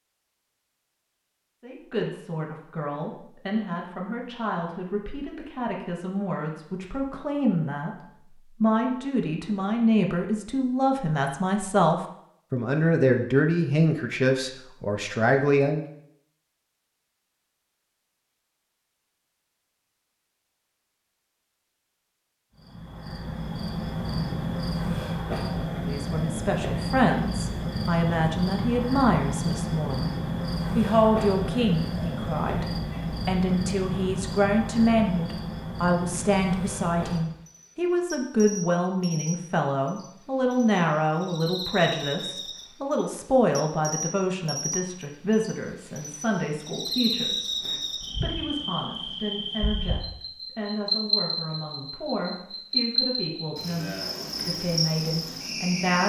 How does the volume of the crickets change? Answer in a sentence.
The loudness of the crickets goes down, then up.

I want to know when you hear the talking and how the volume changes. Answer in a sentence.
You can hear the talking from 1.6 to 15.8 s, getting louder; and from 25.8 to 56.0 s, getting quieter.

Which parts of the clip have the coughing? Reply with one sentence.
You can't hear the coughing here.